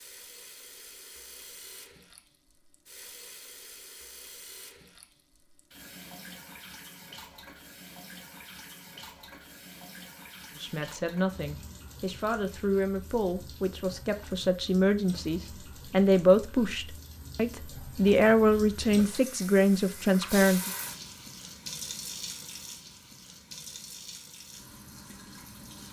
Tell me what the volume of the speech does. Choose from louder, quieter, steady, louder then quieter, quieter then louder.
louder.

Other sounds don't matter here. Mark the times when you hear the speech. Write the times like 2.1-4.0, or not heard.
10.6-20.7.